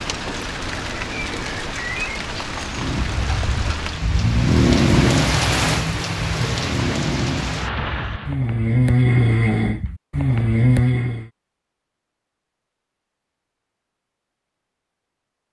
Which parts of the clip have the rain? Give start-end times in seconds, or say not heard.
0.0-8.4.